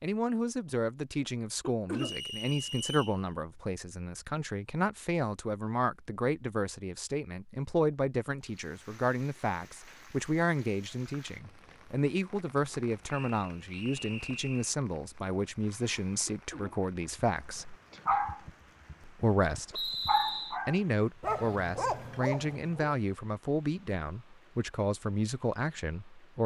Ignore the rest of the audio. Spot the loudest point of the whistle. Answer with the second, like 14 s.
20 s.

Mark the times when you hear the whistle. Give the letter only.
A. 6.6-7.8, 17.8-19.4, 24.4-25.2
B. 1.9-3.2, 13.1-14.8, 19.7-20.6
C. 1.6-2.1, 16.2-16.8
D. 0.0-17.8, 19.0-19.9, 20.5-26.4
B.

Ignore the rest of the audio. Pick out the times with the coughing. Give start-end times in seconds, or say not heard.
1.6-2.1, 16.2-16.8.